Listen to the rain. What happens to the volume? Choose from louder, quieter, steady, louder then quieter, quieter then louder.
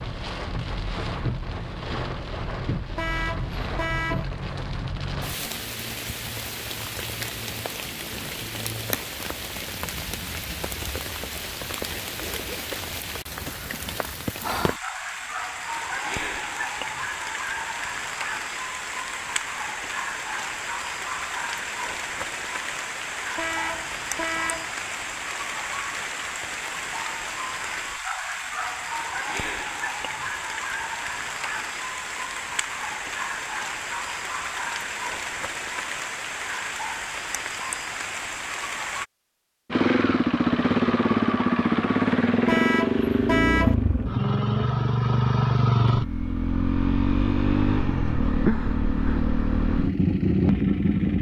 steady.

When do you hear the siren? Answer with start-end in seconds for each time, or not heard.
not heard.